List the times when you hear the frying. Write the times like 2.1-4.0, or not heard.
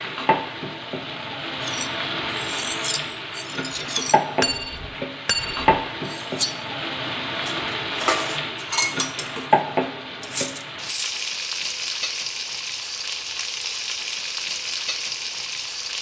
0.0-15.9.